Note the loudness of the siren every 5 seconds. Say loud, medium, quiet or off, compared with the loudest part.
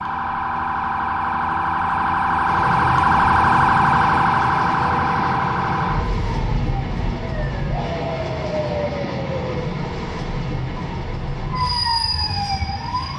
loud, medium, medium.